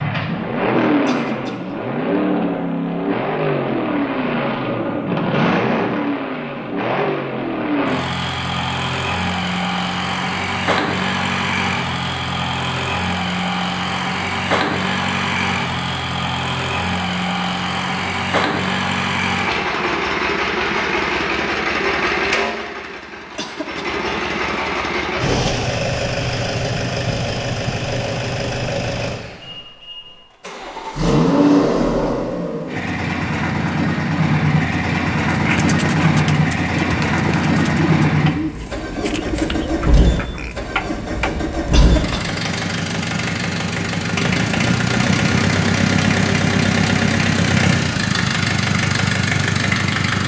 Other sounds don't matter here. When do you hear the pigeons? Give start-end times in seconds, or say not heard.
35.3-41.3.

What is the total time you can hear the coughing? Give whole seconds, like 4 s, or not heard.
2 s.